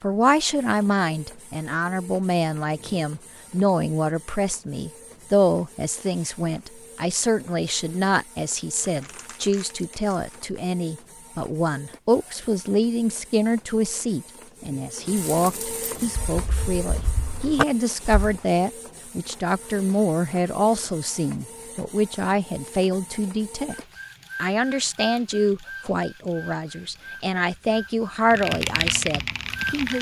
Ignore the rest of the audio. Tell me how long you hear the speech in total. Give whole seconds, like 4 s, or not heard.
29 s.